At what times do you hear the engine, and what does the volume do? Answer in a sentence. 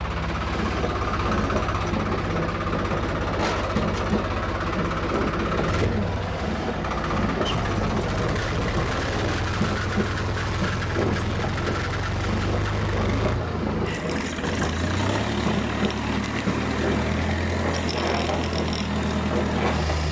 You can hear the engine from 0.0 to 20.0 s, at a steady volume.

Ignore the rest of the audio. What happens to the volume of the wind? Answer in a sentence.
The loudness of the wind stays about the same.